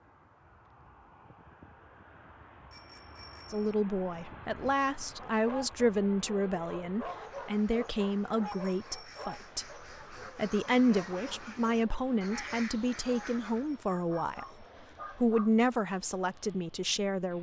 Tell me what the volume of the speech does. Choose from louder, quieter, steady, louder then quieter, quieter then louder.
steady.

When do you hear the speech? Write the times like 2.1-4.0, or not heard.
3.5-9.7, 10.3-17.3.